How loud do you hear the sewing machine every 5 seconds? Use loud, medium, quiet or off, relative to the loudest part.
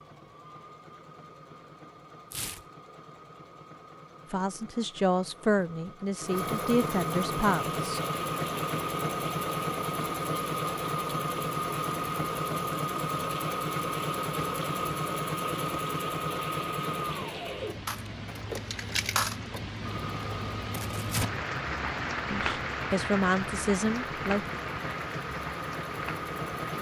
quiet, loud, loud, loud, medium, medium.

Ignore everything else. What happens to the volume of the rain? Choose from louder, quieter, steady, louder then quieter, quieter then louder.
louder.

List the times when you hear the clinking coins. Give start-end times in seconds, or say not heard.
17.9-19.6.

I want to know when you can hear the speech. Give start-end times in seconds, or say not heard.
4.3-8.0, 22.2-24.5.